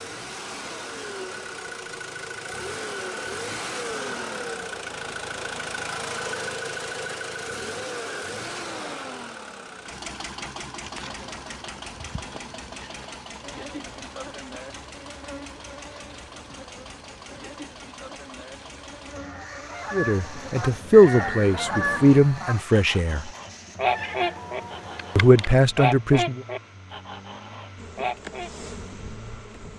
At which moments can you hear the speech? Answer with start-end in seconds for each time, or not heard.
19.9-23.3, 25.1-26.4.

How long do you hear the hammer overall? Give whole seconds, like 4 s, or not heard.
not heard.